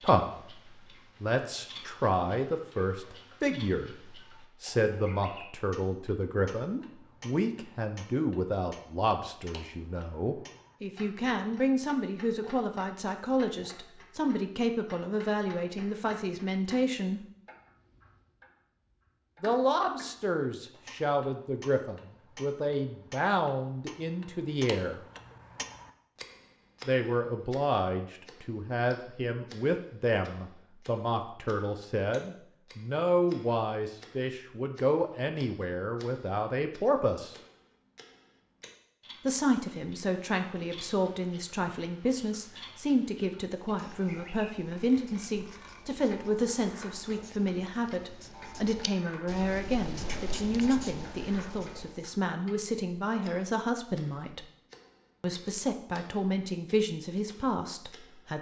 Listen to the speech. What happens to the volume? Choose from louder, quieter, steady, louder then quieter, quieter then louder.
steady.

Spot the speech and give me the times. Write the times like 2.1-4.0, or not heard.
0.0-17.2, 19.4-25.1, 26.9-37.4, 39.2-54.5, 55.2-58.3.